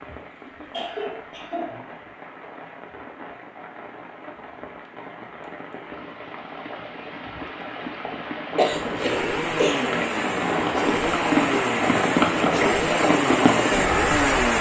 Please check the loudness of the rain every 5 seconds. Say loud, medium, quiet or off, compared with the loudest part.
quiet, medium, loud.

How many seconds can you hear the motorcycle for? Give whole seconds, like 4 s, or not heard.
6 s.